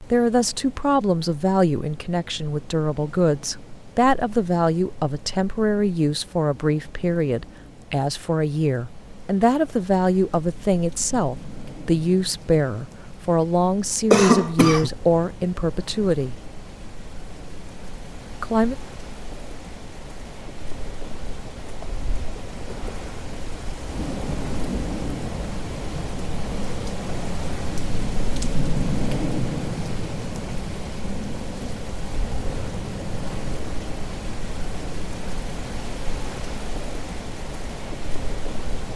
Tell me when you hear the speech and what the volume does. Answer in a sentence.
You can hear the speech from 0.1 to 16.4 s, at a steady volume; and briefly from 18.3 to 18.8 s.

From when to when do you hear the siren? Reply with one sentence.
The siren can't be heard in this clip.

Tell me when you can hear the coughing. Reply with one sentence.
The coughing can be heard from 14.1 to 14.9 s.